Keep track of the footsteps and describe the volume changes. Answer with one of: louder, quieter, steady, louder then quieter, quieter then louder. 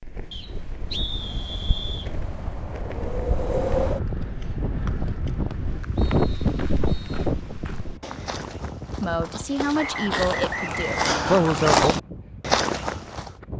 louder.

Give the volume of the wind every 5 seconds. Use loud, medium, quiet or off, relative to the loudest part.
loud, loud, quiet.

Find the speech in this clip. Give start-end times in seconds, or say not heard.
9.0-11.9.